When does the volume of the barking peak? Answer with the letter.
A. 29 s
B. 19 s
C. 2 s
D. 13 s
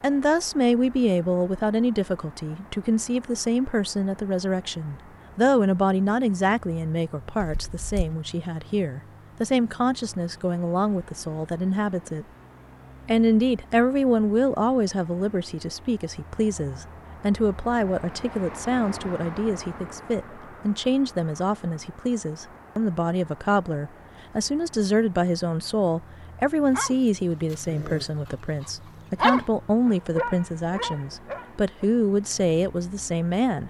A.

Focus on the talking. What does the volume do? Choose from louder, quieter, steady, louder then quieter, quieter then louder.
steady.